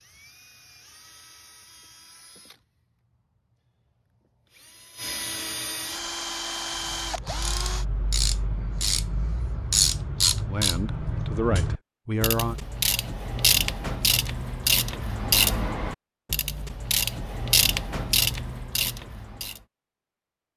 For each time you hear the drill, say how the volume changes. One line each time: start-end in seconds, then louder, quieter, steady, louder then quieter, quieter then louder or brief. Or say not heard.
0.0-7.8 quieter then louder.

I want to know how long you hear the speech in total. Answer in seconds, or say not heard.
2 s.